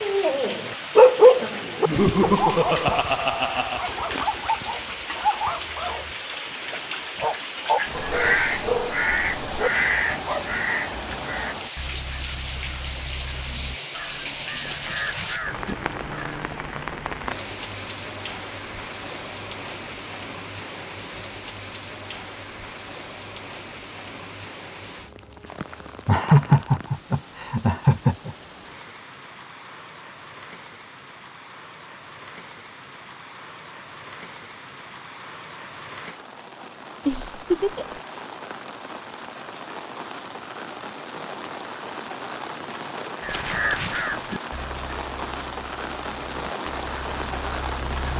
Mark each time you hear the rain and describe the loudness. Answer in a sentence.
The rain can be heard from 0.0 to 48.1 s, getting quieter then louder.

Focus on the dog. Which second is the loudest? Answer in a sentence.
The loudest moment of the dog is at 1 second.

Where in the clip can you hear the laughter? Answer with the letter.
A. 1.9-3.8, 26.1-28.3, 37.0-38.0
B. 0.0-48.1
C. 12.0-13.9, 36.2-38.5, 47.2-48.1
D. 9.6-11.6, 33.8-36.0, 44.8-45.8
A.